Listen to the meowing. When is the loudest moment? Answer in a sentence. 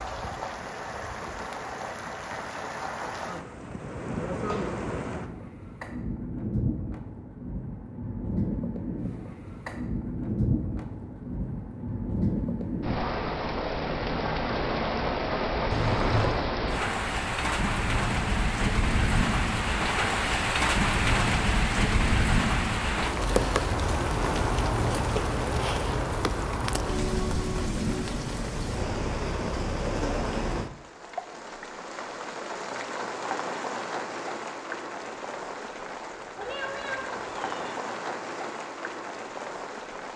The loudest moment of the meowing is at 16 seconds.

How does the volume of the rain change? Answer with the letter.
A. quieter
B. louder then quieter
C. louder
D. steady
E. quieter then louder
B.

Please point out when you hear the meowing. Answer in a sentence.
The meowing can be heard from 4.3 to 4.8 s, from 15.7 to 16.5 s and from 36.4 to 37.8 s.